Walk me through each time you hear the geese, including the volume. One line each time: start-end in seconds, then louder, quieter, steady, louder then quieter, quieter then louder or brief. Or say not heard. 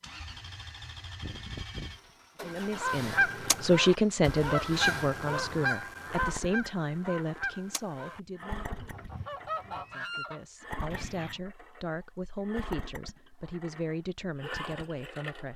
2.5-11.4 quieter then louder.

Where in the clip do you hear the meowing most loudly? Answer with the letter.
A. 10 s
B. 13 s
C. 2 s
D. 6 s
C.